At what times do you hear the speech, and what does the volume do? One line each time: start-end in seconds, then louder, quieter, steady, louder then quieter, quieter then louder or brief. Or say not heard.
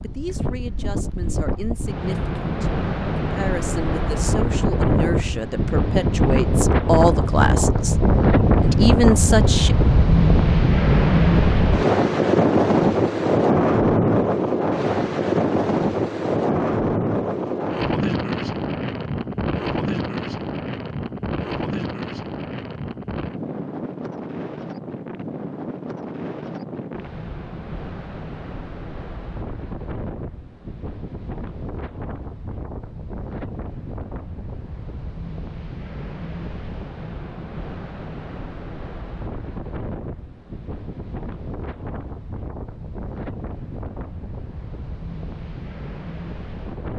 0.0-8.0 louder
8.6-9.8 brief.